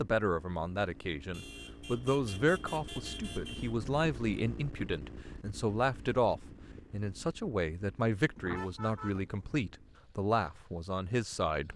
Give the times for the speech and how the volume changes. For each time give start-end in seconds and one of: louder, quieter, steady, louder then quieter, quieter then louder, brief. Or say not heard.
0.0-11.7 steady.